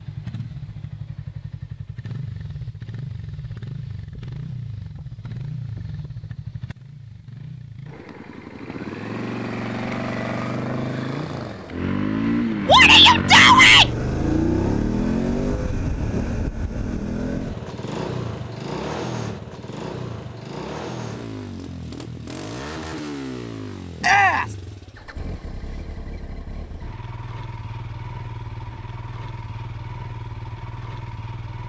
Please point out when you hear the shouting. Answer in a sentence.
You can hear the shouting from 12.7 to 13.9 s and from 24.0 to 24.4 s.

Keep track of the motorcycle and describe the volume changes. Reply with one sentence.
The loudness of the motorcycle goes up, then down.